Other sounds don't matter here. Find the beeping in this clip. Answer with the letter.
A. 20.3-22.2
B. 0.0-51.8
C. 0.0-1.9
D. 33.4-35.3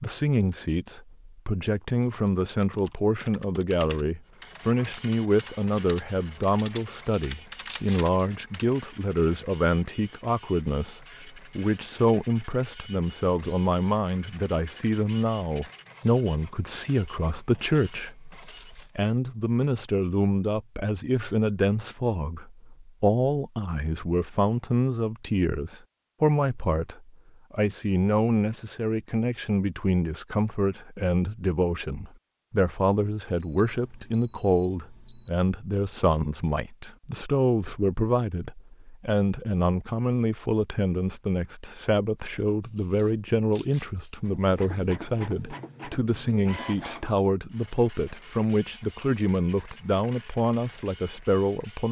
D.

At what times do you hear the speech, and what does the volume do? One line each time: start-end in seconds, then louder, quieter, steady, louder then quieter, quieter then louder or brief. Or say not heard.
0.0-51.8 steady.